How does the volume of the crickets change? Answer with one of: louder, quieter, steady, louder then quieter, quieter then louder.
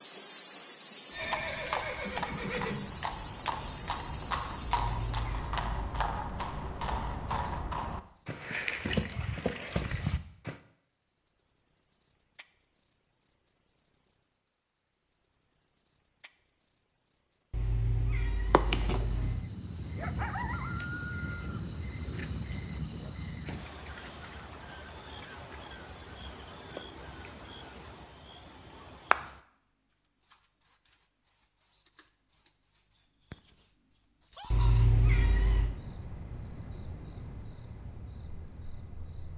quieter.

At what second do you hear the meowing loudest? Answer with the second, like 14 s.
35 s.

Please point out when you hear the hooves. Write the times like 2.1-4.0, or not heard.
1.1-10.6.